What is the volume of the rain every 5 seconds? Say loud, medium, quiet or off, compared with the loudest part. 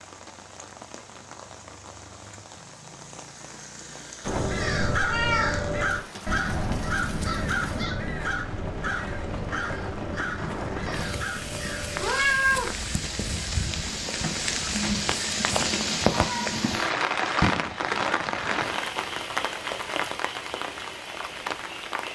quiet, quiet, medium, loud, medium.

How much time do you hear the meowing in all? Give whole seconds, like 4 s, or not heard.
3 s.